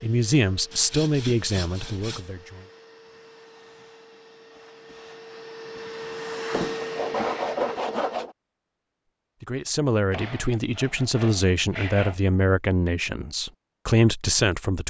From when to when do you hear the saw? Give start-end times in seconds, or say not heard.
0.7-2.3, 6.5-8.3, 10.1-12.2.